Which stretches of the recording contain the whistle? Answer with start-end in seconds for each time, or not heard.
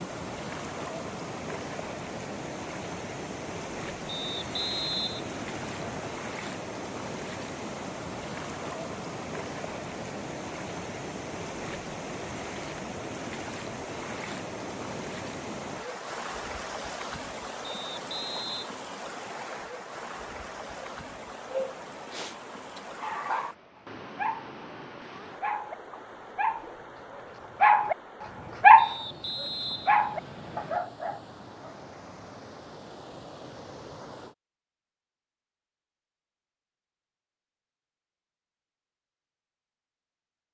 4.0-6.1, 17.6-18.7, 28.8-30.8.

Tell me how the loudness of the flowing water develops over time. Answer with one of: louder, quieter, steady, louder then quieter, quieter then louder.
quieter.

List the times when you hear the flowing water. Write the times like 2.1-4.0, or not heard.
0.0-34.4.